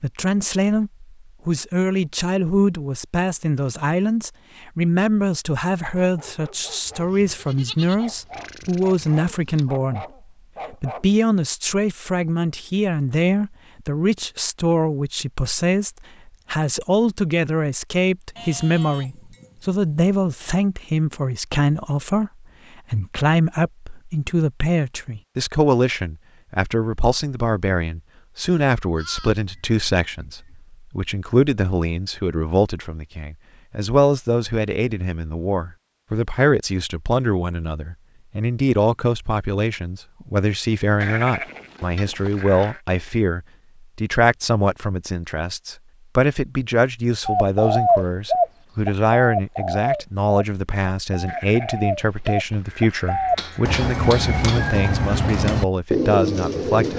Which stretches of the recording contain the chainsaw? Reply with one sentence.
You can't hear the chainsaw here.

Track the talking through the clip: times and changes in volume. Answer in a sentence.
The talking can be heard from 0.0 to 10.1 s, at a steady volume; and from 10.7 to 56.9 s, at a steady volume.